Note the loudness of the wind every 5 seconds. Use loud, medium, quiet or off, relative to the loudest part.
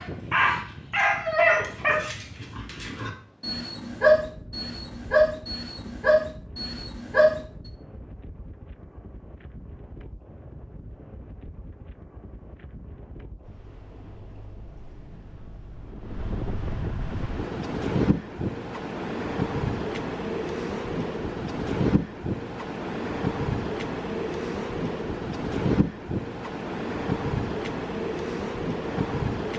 quiet, quiet, quiet, loud, loud, loud.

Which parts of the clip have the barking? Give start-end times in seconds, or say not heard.
0.0-7.4.